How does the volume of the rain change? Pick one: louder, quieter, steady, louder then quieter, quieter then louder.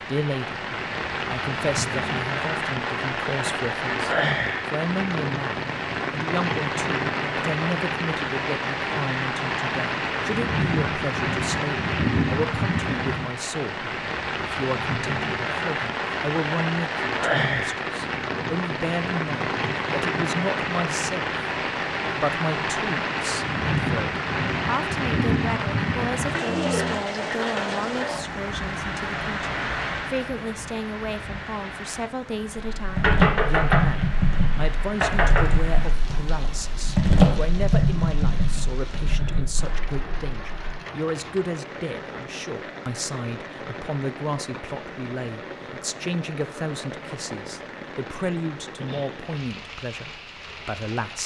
quieter.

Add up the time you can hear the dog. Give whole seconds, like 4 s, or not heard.
not heard.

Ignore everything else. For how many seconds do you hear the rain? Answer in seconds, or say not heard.
51 s.